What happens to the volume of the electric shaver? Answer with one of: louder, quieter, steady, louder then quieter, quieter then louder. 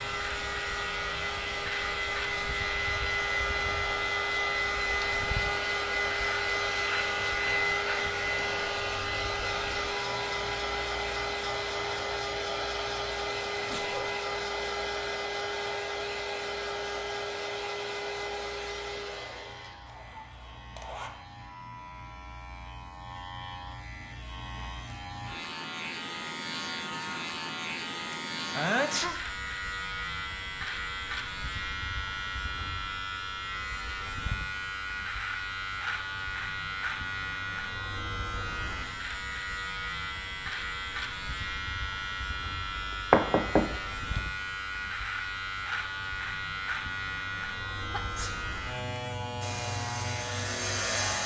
quieter then louder.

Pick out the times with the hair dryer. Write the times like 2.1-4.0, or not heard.
0.0-21.1, 49.4-51.2.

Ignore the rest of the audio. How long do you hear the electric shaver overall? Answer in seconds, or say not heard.
51 s.